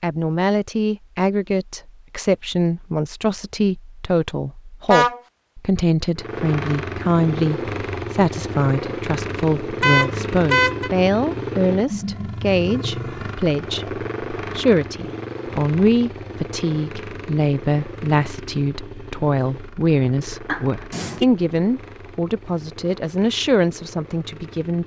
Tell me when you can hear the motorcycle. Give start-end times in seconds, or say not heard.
6.2-24.8.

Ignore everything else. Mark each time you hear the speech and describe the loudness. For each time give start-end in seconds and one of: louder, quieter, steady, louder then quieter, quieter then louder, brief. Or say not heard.
0.0-24.8 steady.